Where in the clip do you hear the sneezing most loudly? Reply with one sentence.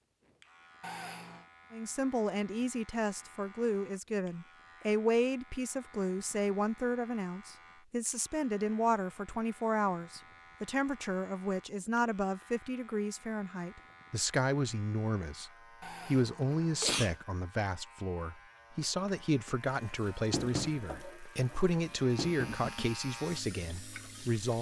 The loudest moment of the sneezing is at 17 seconds.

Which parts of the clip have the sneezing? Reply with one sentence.
You can hear the sneezing from 0.8 to 1.4 s and from 15.8 to 17.1 s.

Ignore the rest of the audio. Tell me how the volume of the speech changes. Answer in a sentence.
The volume of the speech stays about the same.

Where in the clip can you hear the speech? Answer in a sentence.
You can hear the speech from 1.7 to 24.5 s.